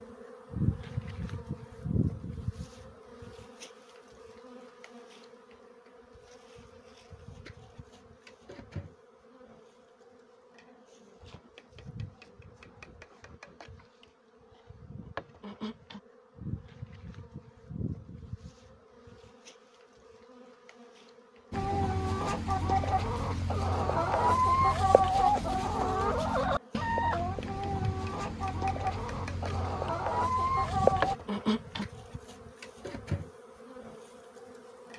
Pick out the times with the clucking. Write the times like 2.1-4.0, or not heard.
21.5-31.1.